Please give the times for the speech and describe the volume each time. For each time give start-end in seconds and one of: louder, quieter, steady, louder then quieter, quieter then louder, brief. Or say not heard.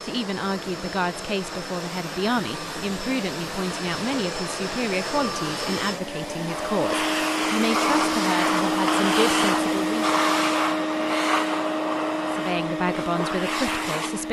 0.0-10.1 steady
12.2-14.2 brief.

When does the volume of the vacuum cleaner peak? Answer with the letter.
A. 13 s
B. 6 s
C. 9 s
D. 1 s
C.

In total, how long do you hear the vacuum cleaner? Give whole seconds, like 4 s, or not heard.
14 s.